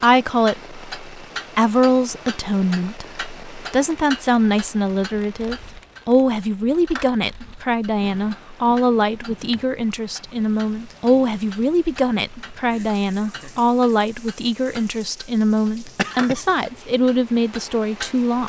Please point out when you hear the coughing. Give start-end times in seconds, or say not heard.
15.8-16.9.